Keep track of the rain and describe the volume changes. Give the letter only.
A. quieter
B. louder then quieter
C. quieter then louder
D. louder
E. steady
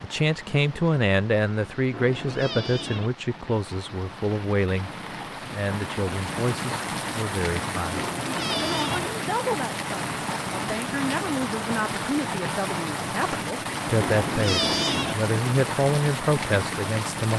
D.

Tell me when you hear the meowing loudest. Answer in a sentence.
The loudest moment of the meowing is at 15 seconds.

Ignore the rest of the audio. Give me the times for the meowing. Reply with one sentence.
The meowing can be heard from 1.9 to 3.1 s, from 7.9 to 9.1 s and from 14.0 to 15.2 s.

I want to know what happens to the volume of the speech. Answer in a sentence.
The volume of the speech goes down, then up.